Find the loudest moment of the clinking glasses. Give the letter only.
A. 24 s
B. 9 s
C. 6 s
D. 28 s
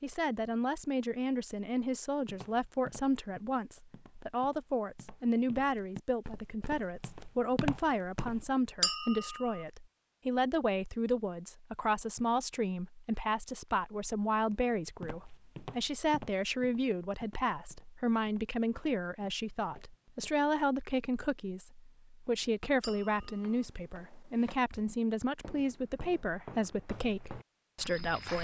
B.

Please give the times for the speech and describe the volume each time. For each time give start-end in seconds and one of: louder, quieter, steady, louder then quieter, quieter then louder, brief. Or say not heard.
0.0-28.4 steady.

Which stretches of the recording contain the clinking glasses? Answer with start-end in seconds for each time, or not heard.
8.8-9.6, 22.8-23.6.